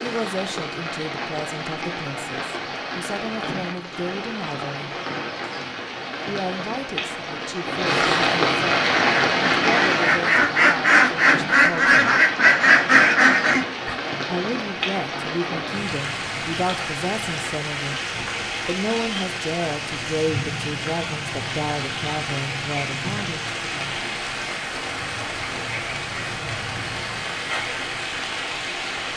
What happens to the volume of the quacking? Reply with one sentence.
The loudness of the quacking goes up.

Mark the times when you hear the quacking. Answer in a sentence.
The quacking can be heard from 8.8 to 13.9 s.